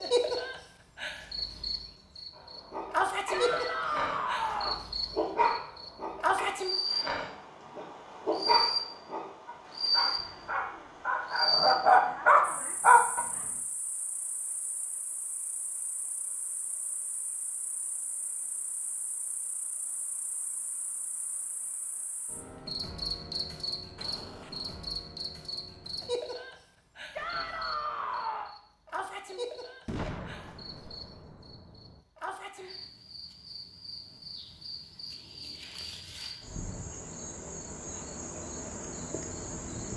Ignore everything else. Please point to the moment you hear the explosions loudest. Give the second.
30 s.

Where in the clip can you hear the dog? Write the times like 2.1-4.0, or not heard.
2.4-13.2.